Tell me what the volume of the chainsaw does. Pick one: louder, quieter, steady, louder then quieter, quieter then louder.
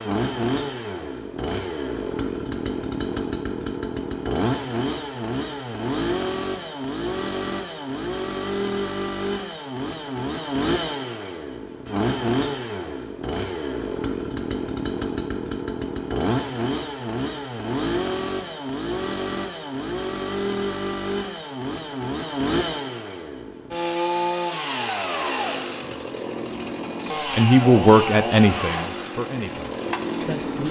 steady.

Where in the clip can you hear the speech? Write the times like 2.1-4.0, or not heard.
27.1-30.6.